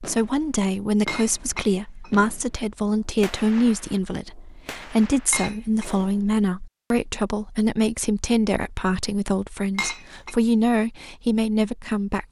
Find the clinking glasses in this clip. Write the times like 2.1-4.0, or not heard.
1.1-2.1, 5.3-5.9, 9.8-10.3.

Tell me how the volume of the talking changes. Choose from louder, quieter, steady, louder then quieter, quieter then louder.
steady.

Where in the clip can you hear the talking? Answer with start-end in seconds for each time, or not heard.
0.0-12.2.